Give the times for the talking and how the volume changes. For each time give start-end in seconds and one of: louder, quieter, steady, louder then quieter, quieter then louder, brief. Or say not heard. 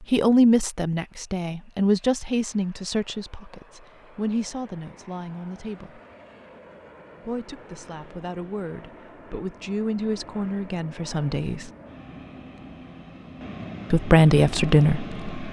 0.1-6.0 quieter
7.2-11.7 louder
13.9-15.2 brief.